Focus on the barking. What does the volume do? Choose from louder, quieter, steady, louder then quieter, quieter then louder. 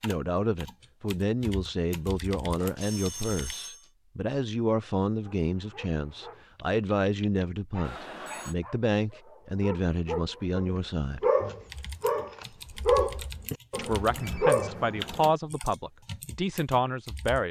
louder.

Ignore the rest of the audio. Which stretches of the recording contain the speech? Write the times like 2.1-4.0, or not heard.
0.0-11.2, 13.8-17.4.